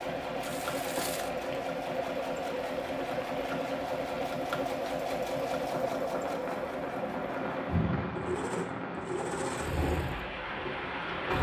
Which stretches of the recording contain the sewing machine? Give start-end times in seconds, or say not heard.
0.0-11.3.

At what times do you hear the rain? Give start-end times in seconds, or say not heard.
0.0-11.3.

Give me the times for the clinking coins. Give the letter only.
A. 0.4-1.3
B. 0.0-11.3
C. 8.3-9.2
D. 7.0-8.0
A.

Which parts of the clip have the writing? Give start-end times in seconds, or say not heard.
not heard.